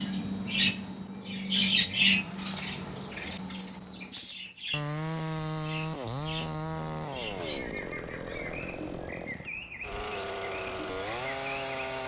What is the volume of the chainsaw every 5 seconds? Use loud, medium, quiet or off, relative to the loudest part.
medium, loud, loud.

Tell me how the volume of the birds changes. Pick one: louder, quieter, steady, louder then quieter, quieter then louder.
quieter.